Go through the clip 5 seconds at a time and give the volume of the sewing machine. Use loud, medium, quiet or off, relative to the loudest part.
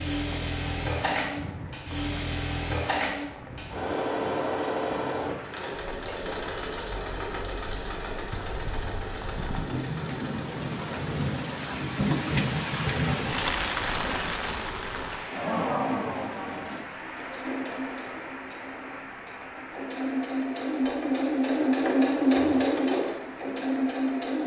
medium, medium, quiet, quiet, loud.